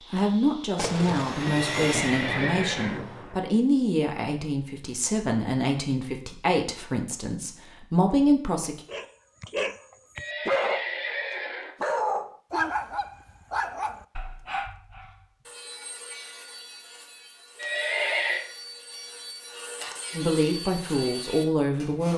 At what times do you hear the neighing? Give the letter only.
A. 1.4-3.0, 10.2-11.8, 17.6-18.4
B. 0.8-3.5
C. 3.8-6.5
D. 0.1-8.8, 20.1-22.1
A.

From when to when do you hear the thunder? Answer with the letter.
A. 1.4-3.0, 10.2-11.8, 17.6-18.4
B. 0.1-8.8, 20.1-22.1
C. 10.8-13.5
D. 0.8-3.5
D.